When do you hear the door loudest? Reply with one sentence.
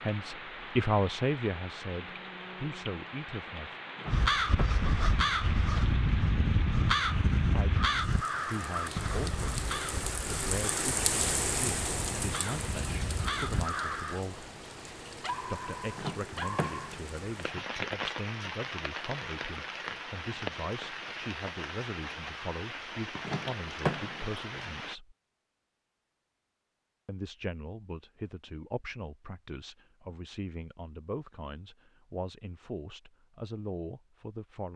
The loudest moment of the door is at 24 seconds.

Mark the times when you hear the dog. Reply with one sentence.
You can hear the dog from 15.2 to 16.9 s.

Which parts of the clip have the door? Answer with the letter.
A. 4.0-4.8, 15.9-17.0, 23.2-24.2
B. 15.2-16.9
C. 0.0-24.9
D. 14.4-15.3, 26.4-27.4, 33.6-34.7
A.